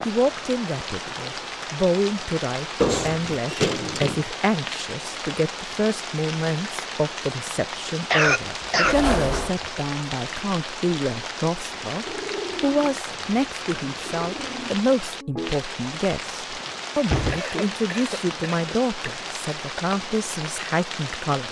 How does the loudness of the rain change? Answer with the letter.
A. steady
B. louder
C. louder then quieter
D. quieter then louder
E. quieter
A.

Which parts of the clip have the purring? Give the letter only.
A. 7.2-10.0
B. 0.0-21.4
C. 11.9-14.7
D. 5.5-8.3
C.